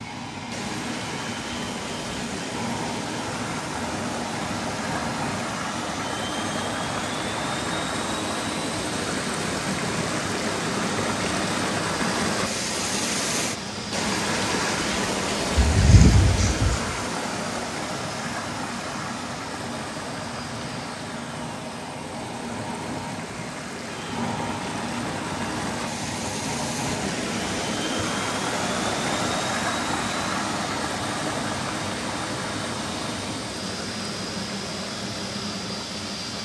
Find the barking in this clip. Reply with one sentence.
The barking can be heard from 15.6 to 16.9 s.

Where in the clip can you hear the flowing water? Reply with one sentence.
You can hear the flowing water from 0.0 to 36.4 s.